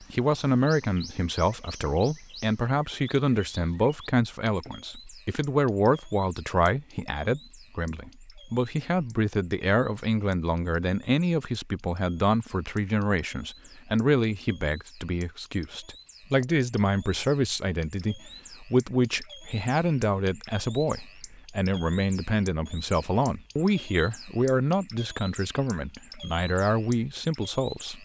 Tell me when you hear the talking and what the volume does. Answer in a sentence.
You can hear the talking from 0.0 to 28.0 s, at a steady volume.